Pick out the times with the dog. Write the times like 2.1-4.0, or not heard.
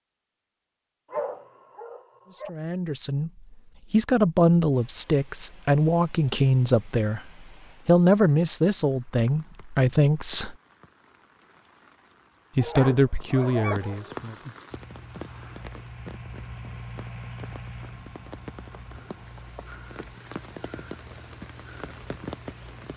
1.1-2.5, 12.6-14.2.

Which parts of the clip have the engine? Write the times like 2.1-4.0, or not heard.
14.7-22.9.